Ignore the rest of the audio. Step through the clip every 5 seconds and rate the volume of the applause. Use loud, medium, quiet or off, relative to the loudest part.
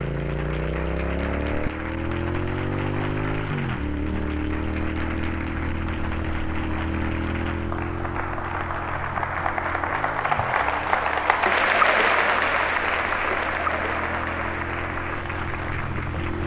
quiet, medium, loud, medium.